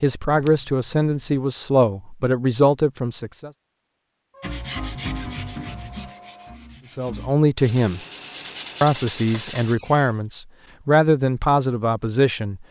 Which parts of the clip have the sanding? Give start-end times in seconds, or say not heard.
4.4-9.8.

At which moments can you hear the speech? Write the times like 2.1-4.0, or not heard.
0.0-3.5, 6.9-8.0, 8.8-12.6.